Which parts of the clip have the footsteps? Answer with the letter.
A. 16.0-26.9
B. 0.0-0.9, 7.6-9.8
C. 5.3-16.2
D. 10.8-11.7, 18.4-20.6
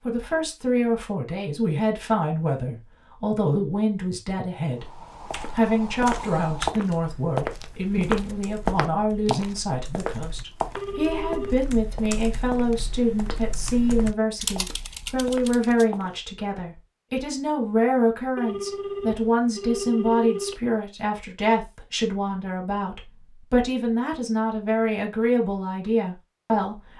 C.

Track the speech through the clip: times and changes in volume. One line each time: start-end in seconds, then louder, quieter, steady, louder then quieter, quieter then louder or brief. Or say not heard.
0.1-26.9 steady.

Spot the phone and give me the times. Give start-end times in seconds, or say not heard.
10.8-11.7, 18.4-20.6.